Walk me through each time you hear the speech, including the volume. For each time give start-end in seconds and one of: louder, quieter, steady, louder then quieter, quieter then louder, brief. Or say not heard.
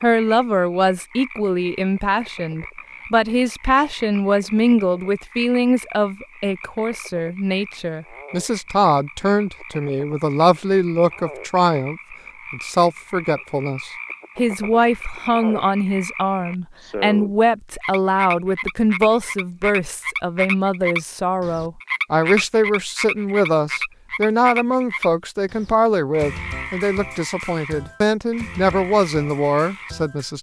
0.0-30.3 steady.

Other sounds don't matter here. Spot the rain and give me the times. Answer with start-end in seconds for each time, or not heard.
not heard.